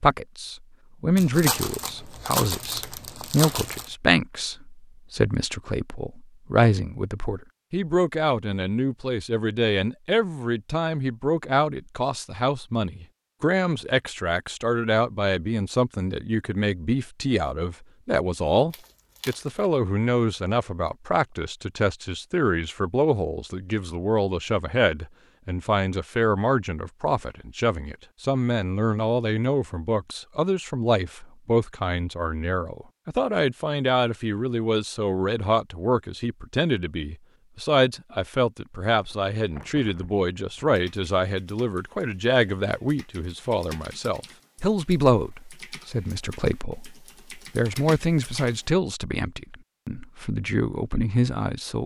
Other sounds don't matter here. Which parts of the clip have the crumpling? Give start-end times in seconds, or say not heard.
1.1-3.9, 18.7-19.5, 38.9-40.8.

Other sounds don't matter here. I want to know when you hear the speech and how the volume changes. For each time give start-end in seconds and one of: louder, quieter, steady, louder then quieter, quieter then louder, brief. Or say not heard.
0.0-51.8 steady.